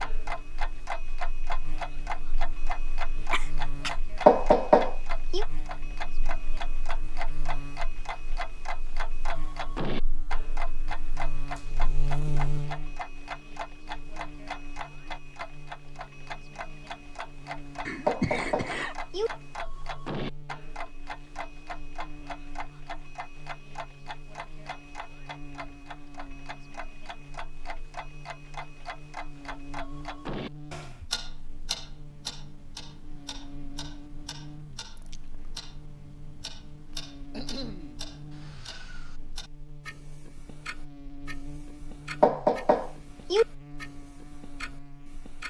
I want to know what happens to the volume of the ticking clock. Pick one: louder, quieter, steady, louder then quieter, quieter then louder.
quieter.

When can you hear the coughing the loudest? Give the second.
18 s.